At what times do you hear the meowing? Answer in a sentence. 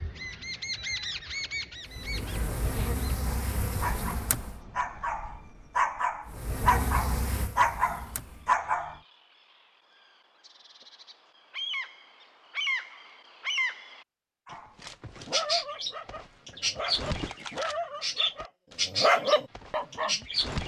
The meowing can't be heard in this clip.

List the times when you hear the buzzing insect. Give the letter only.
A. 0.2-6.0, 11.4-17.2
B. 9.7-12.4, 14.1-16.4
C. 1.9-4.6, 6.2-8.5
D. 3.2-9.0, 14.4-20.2
C.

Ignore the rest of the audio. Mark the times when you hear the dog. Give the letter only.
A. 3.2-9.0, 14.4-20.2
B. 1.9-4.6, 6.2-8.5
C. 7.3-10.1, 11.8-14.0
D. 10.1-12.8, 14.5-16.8
A.